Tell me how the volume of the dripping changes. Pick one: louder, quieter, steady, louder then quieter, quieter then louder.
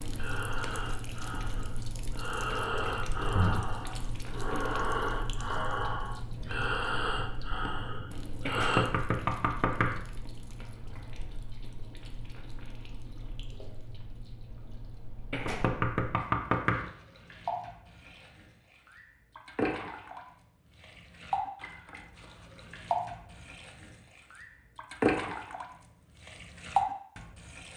quieter then louder.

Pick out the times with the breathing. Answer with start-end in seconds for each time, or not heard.
0.0-8.9.